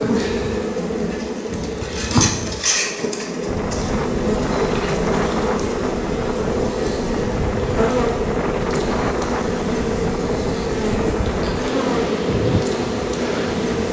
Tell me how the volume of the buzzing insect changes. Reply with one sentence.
The loudness of the buzzing insect stays about the same.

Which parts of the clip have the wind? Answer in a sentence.
You can hear the wind from 3.4 to 13.8 s.